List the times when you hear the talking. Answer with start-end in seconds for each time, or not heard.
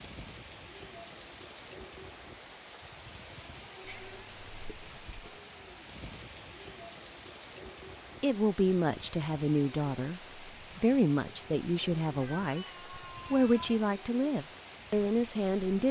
8.2-15.8.